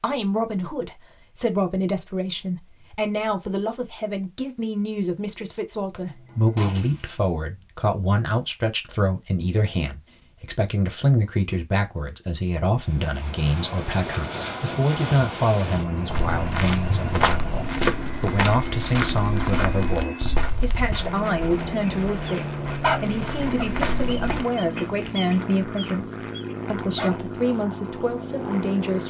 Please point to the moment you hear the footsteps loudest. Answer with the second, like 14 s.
18 s.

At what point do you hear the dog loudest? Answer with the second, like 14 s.
23 s.